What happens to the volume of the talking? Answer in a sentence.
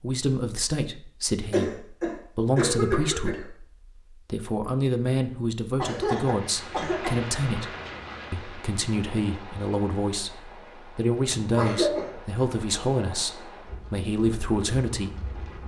The volume of the talking stays about the same.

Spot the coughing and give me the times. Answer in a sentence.
You can hear the coughing from 1.5 to 3.5 s, from 5.8 to 7.2 s and from 11.4 to 12.2 s.